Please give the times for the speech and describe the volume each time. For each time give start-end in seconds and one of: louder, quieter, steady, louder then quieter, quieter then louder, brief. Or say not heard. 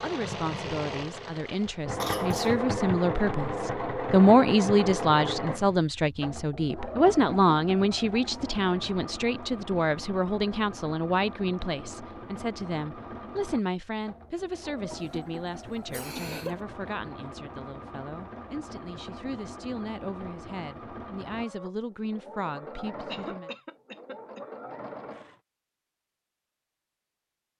0.0-23.5 quieter.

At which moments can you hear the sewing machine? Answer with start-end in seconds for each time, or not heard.
0.0-25.4.